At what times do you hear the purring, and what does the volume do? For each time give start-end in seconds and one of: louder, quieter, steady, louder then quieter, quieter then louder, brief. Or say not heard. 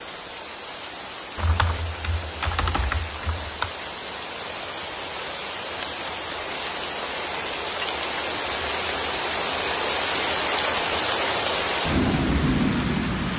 not heard.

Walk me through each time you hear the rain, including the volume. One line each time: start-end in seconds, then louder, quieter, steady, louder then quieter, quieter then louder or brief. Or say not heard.
0.0-13.3 louder.